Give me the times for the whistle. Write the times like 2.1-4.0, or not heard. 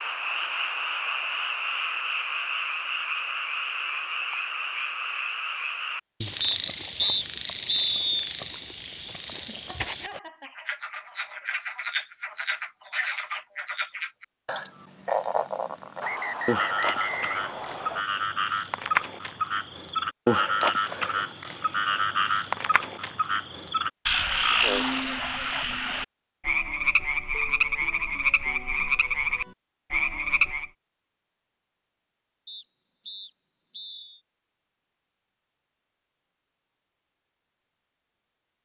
6.4-8.3, 16.0-18.1, 32.5-34.2.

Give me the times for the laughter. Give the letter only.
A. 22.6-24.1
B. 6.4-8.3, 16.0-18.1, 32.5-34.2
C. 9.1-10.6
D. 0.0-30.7
C.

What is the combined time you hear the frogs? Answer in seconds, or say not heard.
31 s.